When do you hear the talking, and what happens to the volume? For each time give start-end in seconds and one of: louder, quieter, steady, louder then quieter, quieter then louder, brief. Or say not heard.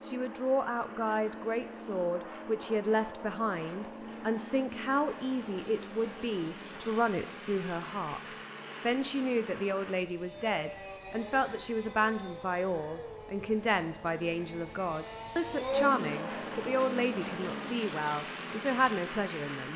0.1-19.7 steady.